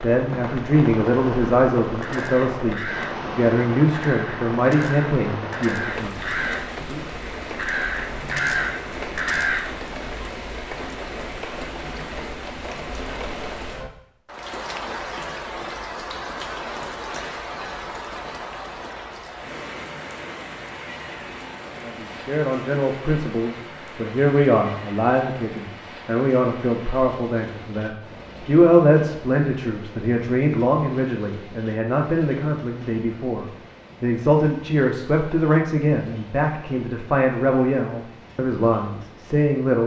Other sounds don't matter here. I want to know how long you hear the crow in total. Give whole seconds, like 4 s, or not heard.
6 s.